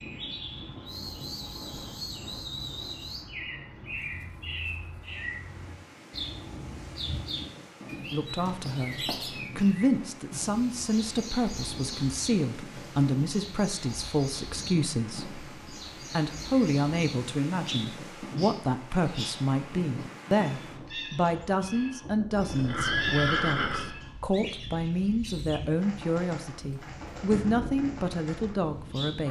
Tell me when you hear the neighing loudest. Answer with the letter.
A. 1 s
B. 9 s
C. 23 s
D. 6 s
C.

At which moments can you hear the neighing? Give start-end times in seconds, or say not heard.
8.4-9.3, 22.4-23.9.